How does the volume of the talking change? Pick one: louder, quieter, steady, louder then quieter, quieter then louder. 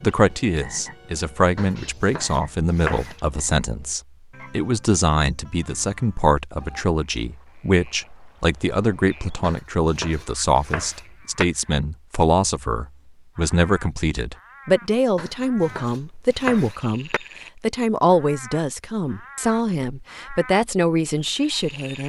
steady.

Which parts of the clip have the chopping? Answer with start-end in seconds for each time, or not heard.
1.6-3.1, 9.4-11.4, 15.2-17.2.